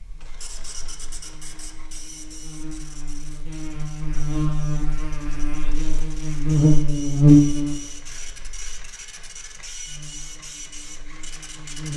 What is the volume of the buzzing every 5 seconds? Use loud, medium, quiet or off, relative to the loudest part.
quiet, loud, quiet.